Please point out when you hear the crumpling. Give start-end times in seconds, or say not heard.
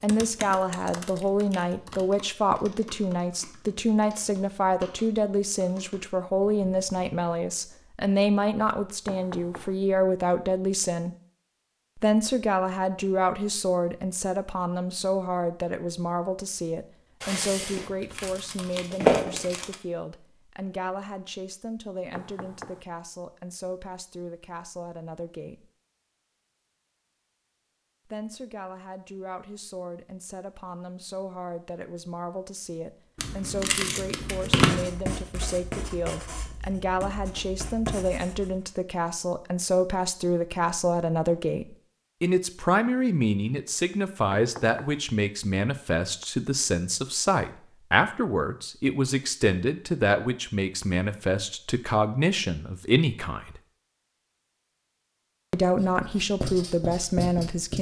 17.2-19.8, 33.1-34.9.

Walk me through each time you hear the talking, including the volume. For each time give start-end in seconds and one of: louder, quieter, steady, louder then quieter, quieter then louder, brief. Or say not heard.
0.0-11.2 steady
11.9-25.7 quieter
28.1-53.6 louder
55.5-57.7 brief.